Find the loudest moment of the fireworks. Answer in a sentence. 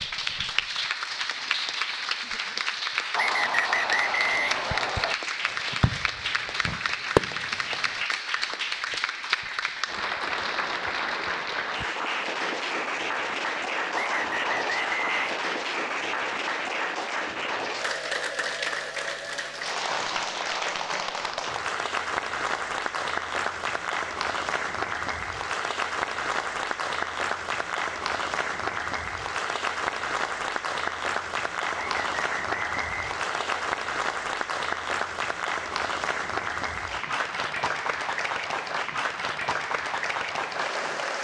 The volume of the fireworks peaks at 7 seconds.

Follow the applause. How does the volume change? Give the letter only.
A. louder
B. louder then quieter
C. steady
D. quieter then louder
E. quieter
C.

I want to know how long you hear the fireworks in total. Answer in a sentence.
You can hear the fireworks for 3 seconds altogether.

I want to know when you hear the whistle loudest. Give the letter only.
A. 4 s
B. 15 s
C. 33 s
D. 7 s
A.